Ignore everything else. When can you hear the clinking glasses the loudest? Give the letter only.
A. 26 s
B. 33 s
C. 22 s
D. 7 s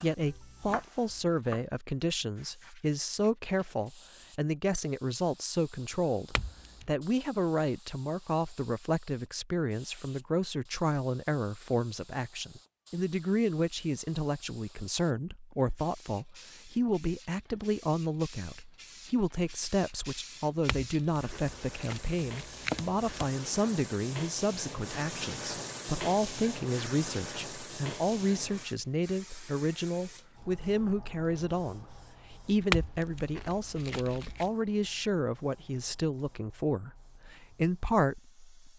B.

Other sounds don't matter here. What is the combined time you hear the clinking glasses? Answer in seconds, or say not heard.
5 s.